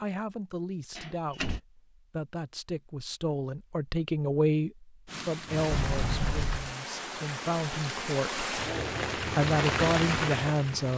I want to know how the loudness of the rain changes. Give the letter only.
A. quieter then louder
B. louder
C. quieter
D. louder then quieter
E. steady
B.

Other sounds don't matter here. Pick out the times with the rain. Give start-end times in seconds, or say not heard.
5.0-10.9.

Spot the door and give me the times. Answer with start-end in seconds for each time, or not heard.
0.9-1.6, 5.7-6.6.